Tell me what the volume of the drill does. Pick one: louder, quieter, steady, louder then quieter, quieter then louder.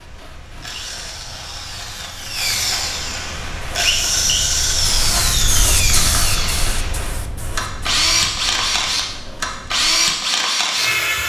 louder.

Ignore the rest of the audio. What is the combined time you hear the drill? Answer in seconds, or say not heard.
11 s.